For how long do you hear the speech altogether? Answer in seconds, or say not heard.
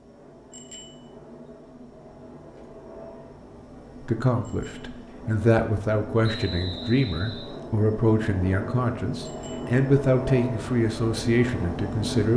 8 s.